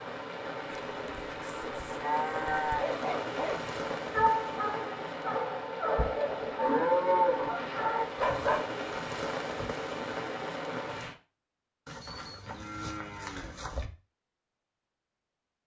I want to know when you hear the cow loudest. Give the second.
7 s.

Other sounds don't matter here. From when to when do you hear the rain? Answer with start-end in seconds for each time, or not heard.
0.0-11.2.